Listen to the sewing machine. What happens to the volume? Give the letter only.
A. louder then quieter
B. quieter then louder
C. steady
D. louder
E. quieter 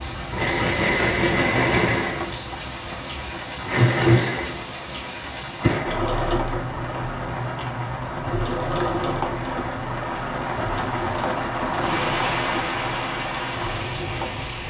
E.